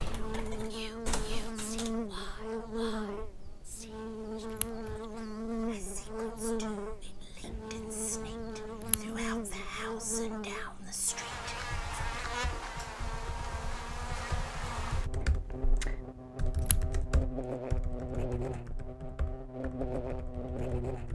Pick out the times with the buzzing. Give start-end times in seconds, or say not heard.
0.0-21.0.